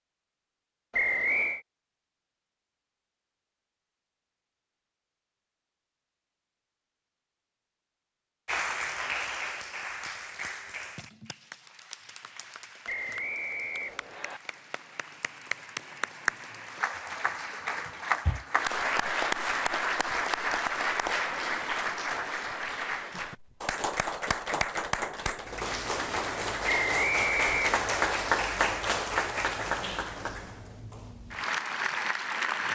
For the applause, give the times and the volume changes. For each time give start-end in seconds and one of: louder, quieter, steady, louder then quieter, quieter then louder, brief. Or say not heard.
8.4-32.7 louder.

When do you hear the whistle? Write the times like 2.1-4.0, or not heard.
0.9-1.6, 12.8-14.4, 26.6-28.2.